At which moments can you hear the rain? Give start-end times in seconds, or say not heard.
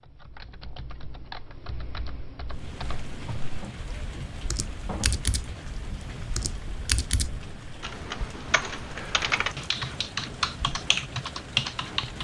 2.5-12.1.